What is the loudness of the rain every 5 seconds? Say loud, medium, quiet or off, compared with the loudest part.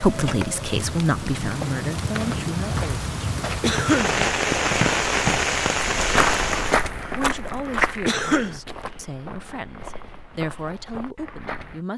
loud, loud, off.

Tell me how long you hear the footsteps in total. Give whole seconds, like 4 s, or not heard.
8 s.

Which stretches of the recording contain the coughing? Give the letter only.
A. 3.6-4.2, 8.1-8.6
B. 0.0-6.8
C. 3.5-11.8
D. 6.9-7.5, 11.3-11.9
A.